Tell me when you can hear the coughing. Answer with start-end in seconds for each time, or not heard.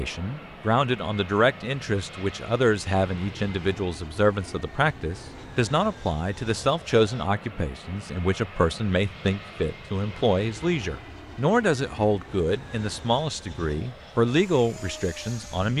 not heard.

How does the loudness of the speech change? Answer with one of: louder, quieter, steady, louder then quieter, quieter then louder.
steady.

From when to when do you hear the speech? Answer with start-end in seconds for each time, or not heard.
0.0-15.7.